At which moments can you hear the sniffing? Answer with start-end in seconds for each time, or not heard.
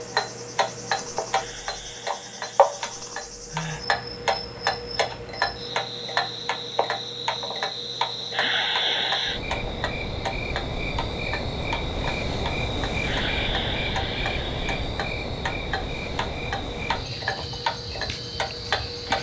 1.3-3.9, 8.3-9.4, 13.0-14.8.